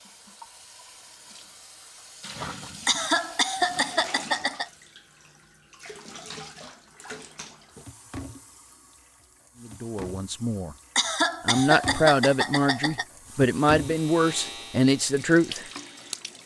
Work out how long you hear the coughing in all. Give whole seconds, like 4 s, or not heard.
4 s.